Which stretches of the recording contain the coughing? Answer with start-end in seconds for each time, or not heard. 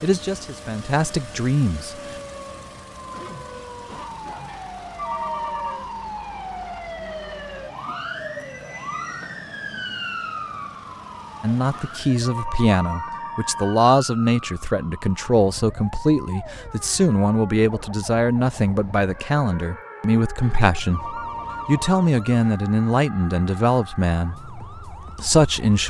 3.1-4.5.